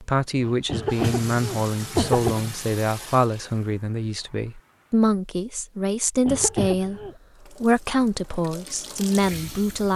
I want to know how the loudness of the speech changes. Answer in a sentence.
The volume of the speech stays about the same.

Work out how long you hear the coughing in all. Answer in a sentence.
The coughing can be heard for 3 seconds in total.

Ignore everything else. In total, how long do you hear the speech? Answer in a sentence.
You can hear the speech for 10 seconds altogether.